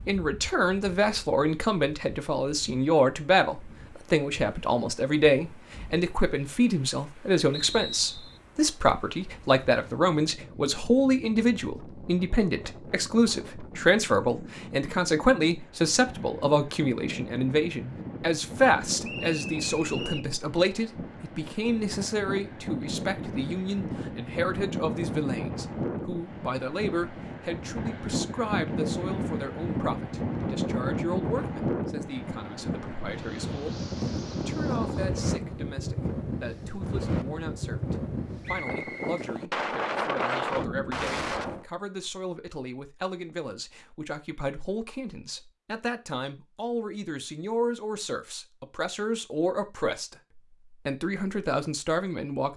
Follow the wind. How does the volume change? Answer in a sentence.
The volume of the wind goes up.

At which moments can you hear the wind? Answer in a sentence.
The wind can be heard from 0.0 to 41.6 s.